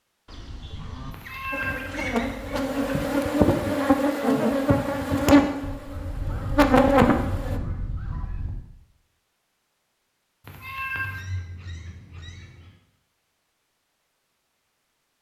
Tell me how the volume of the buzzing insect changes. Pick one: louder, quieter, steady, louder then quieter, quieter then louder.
louder.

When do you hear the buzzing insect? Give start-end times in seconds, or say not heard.
1.5-7.6.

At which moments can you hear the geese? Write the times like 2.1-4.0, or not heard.
0.2-3.0, 5.6-8.6, 10.9-12.8.